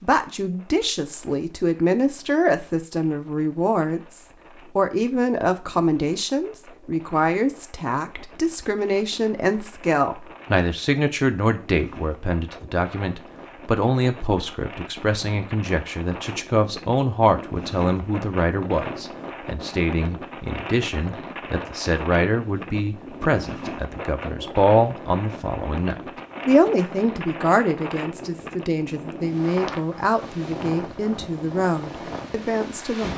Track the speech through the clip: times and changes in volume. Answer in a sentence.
You can hear the speech from 0.0 to 33.1 s, at a steady volume.